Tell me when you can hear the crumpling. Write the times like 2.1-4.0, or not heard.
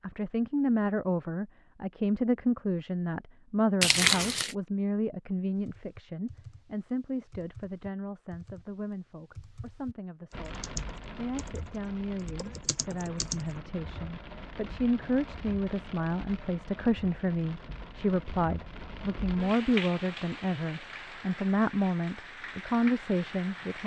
3.8-4.5.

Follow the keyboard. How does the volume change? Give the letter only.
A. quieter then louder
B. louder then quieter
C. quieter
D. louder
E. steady
D.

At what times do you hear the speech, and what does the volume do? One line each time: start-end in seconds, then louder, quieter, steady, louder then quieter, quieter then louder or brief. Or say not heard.
0.0-23.8 quieter then louder.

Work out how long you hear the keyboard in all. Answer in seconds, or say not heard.
8 s.